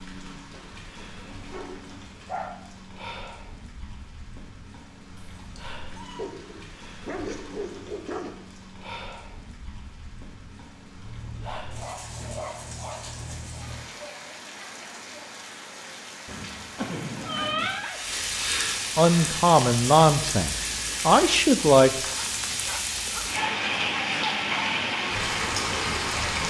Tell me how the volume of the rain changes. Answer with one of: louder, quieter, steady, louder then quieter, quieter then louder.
louder.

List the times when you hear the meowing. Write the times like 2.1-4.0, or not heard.
5.2-6.3, 16.8-17.9.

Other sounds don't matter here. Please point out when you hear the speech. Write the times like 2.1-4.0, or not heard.
18.9-21.9.